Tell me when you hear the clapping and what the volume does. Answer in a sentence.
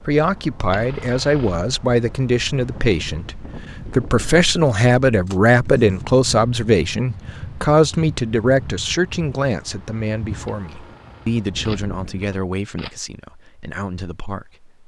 You can't hear the clapping here.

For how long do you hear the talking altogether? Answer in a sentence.
The talking can be heard for 15 seconds in total.